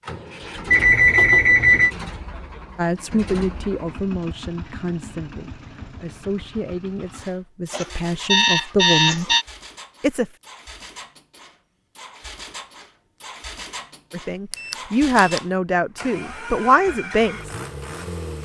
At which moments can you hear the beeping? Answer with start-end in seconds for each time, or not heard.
0.7-1.9, 7.7-9.4, 14.5-15.4.